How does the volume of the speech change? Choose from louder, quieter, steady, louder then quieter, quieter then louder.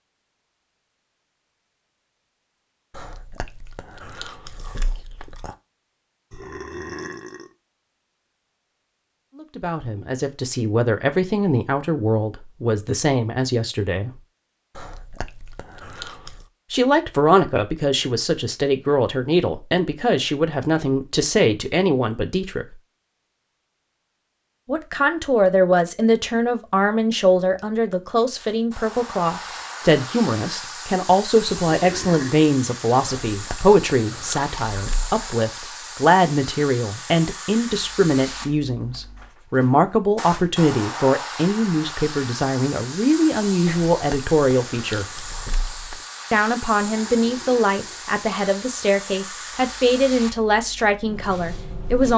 steady.